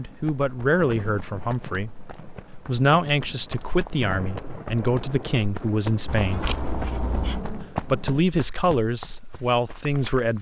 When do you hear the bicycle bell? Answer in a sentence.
You can hear the bicycle bell from 6.0 to 7.5 s.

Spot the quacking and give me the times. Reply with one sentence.
The quacking can't be heard in this clip.